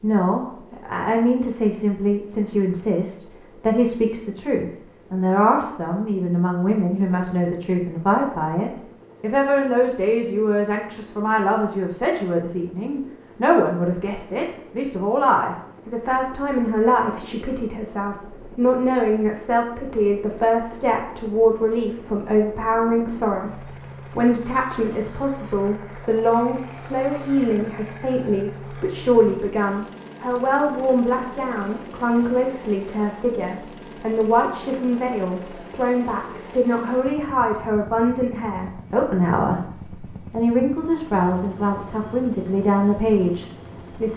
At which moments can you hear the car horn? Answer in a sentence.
The car horn can't be heard in this clip.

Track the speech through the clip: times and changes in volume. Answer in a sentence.
The speech can be heard from 0.0 to 44.1 s, at a steady volume.